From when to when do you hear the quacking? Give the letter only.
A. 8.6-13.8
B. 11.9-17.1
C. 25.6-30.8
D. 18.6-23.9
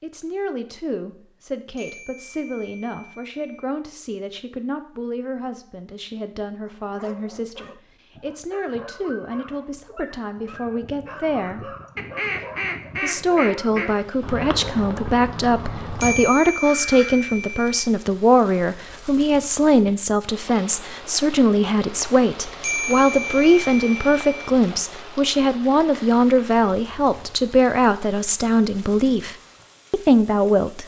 B.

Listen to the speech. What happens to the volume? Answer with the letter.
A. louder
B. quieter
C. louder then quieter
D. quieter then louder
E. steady
A.